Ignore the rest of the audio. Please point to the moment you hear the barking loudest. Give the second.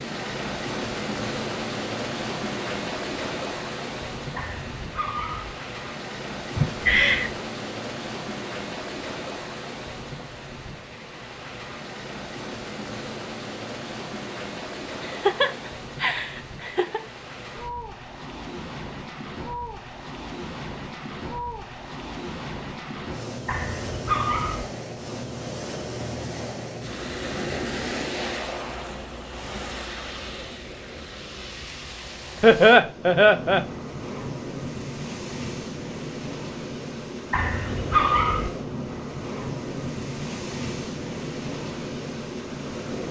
38 s.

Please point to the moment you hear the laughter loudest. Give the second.
33 s.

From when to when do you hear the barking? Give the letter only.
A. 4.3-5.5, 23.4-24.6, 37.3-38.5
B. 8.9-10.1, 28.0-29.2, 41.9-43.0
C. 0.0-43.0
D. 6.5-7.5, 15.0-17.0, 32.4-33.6
A.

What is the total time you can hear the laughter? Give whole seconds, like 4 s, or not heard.
4 s.